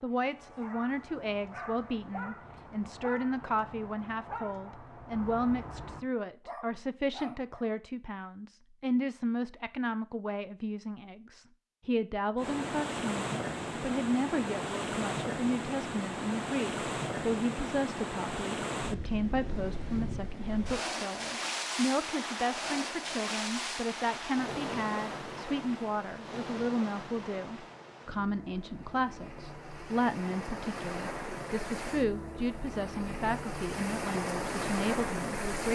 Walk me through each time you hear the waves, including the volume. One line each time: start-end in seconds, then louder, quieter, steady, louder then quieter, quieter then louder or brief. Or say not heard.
12.3-35.7 quieter then louder.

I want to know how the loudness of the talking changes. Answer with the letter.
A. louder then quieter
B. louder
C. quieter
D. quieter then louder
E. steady
E.